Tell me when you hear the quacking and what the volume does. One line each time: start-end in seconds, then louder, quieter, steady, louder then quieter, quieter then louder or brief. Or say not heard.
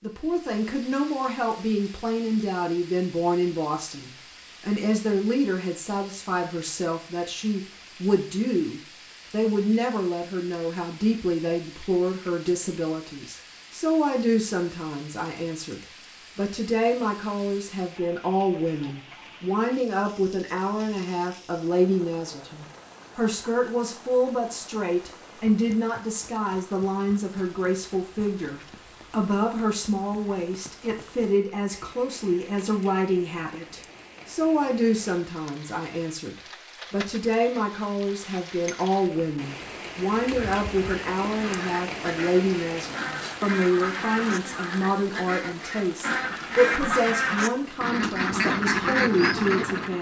40.2-49.9 louder.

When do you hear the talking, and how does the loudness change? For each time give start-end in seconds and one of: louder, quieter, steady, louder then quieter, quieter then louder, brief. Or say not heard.
0.0-49.9 steady.